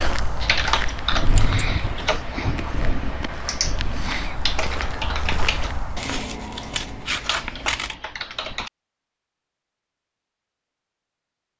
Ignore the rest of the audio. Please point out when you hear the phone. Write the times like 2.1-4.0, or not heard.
not heard.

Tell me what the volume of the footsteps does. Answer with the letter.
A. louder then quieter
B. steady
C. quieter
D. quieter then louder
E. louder
D.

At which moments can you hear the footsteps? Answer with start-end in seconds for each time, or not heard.
0.0-6.2.